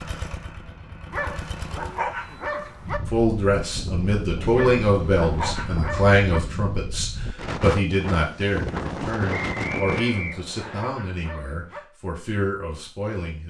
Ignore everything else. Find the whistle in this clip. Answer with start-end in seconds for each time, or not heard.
9.3-10.8.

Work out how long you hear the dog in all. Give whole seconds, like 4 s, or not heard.
6 s.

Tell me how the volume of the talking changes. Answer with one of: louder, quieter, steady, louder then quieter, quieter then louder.
quieter.